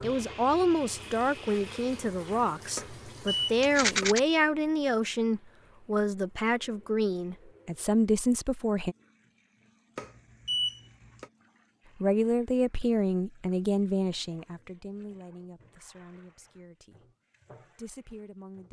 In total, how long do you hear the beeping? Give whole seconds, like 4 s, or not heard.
3 s.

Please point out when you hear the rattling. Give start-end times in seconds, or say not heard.
3.6-4.2.